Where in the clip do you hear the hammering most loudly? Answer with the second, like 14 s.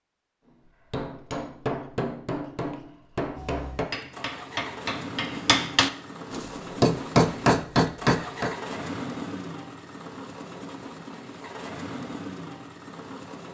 7 s.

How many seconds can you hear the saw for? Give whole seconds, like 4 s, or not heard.
not heard.